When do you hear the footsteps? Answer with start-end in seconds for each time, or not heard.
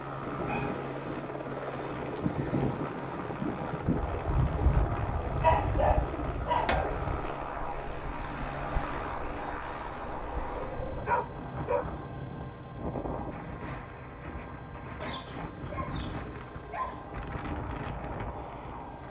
not heard.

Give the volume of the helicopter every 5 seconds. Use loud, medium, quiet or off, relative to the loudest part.
loud, loud, medium, medium.